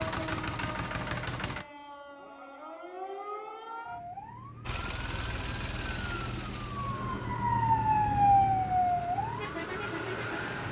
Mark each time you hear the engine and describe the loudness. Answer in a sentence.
You can hear the engine briefly from 0.0 to 1.6 s; and from 4.6 to 10.6 s, getting quieter then louder.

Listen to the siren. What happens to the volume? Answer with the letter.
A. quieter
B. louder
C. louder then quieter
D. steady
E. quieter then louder
B.